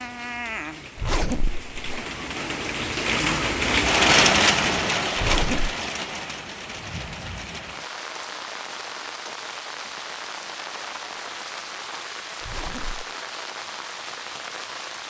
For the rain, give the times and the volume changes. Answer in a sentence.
The rain can be heard from 0.0 to 15.0 s, getting louder then quieter.